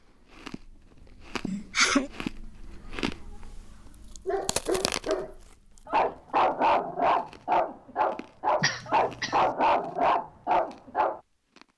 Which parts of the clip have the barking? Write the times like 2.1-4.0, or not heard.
4.2-11.2.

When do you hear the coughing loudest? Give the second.
2 s.